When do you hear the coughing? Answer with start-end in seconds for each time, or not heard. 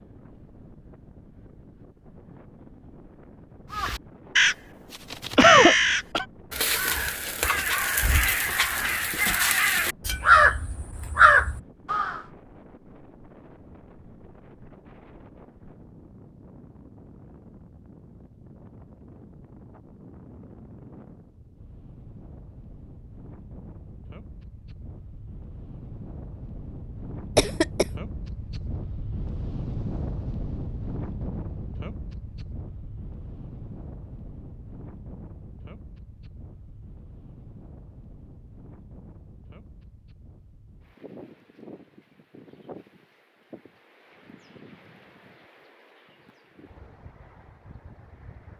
5.3-6.2, 27.4-27.9.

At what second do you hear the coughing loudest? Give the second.
6 s.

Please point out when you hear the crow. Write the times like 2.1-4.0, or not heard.
3.7-12.2.